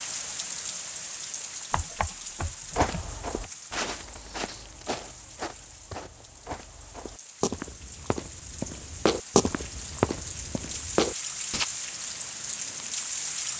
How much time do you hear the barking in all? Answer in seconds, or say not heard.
not heard.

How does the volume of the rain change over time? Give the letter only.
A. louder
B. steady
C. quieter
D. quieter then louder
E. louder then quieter
D.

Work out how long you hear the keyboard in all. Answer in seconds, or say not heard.
2 s.